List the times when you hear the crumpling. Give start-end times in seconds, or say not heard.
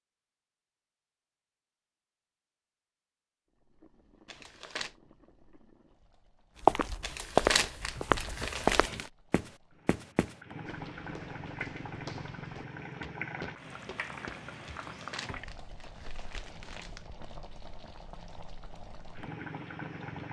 4.2-5.0, 7.0-9.1, 14.7-17.1.